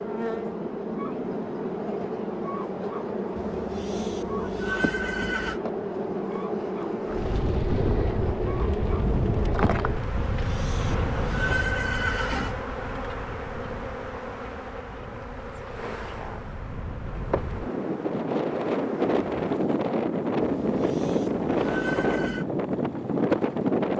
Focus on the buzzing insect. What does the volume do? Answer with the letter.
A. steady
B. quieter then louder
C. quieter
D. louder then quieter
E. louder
C.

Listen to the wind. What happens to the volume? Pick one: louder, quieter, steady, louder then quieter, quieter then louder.
quieter then louder.